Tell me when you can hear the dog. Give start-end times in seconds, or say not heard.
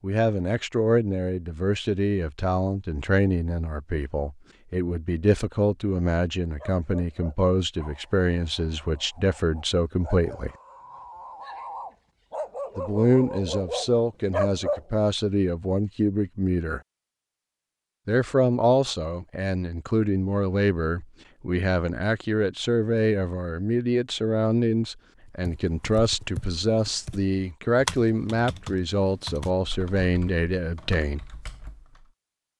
6.5-14.9.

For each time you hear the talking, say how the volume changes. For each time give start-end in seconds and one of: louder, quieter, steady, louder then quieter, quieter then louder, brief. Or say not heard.
0.0-10.5 steady
12.8-16.8 steady
18.1-31.2 steady.